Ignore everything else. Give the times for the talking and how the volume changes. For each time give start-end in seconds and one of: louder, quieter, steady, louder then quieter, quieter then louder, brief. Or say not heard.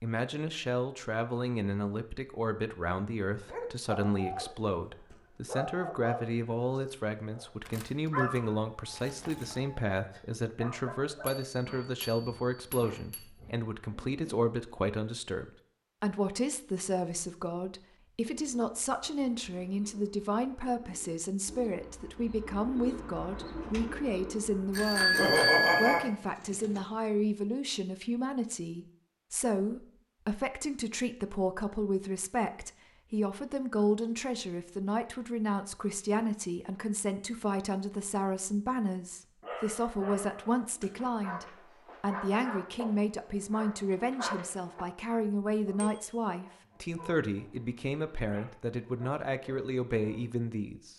0.0-50.9 steady.